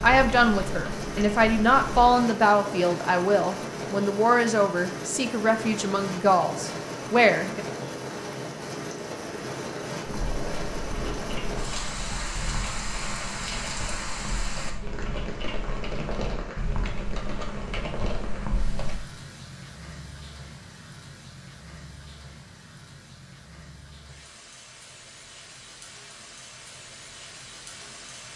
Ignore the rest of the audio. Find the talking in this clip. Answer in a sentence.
You can hear the talking from 0.0 to 7.7 s.